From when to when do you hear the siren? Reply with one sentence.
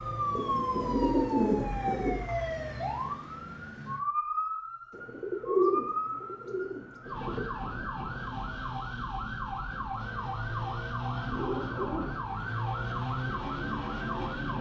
The siren can be heard from 0.0 to 14.5 s.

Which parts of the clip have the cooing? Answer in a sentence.
The cooing can be heard from 0.3 to 2.2 s, from 4.9 to 7.4 s and from 11.2 to 12.7 s.